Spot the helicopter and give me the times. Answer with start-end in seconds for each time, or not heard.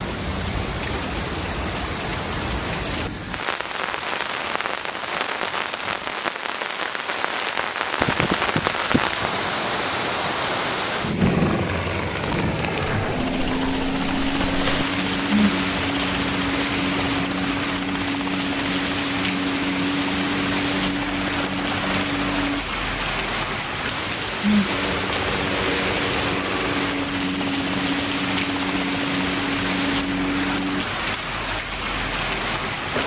11.2-22.6, 24.6-30.9.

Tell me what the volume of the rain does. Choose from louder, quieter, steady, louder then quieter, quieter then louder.
steady.